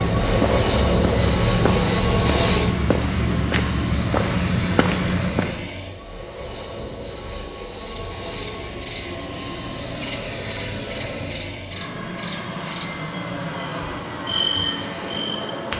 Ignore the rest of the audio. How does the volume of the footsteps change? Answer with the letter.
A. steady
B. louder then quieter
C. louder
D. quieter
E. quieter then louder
A.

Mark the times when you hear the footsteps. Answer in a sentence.
The footsteps can be heard from 0.0 to 5.7 s.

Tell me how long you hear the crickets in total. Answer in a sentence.
You can hear the crickets for 8 seconds altogether.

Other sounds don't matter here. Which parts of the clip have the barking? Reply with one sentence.
You can't hear the barking here.